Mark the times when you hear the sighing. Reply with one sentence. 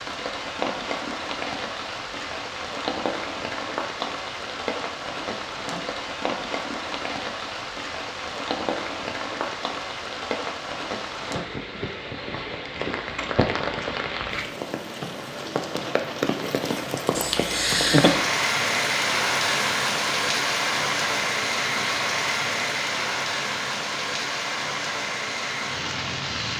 The sighing can be heard from 17.1 to 18.2 s.